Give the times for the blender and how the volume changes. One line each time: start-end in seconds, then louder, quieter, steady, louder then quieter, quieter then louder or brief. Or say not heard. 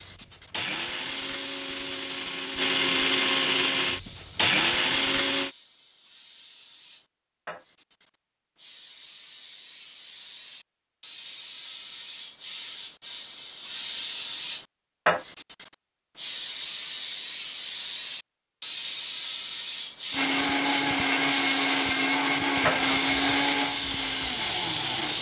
0.0-5.5 louder
20.1-25.1 quieter.